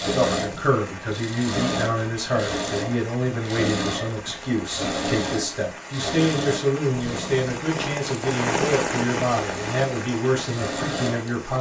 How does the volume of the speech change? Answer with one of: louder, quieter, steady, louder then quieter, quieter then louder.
steady.